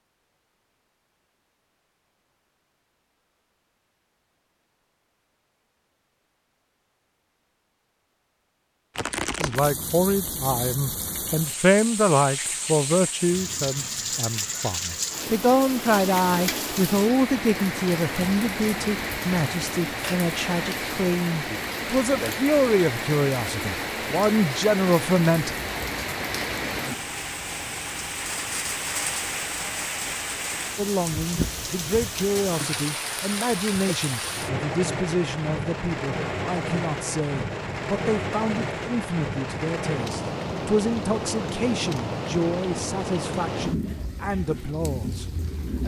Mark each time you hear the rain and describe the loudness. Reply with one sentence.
You can hear the rain from 8.9 to 45.8 s, at a steady volume.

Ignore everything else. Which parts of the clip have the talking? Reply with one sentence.
The talking can be heard from 9.4 to 25.6 s and from 30.8 to 45.8 s.